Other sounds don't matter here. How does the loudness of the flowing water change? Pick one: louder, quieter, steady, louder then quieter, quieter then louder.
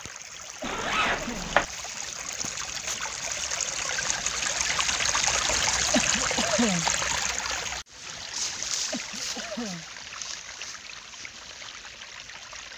louder then quieter.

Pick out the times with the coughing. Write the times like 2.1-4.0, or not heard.
0.6-1.6, 5.9-6.8, 8.9-9.8.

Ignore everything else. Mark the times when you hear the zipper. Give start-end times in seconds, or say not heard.
0.6-1.6.